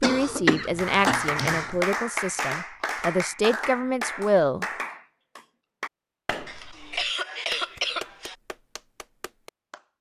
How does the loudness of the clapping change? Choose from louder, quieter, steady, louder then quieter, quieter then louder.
quieter.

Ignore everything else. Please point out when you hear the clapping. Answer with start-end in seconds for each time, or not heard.
0.8-9.8.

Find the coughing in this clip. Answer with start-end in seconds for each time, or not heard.
0.0-1.8, 6.5-8.3.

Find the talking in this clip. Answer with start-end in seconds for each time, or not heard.
0.0-4.7.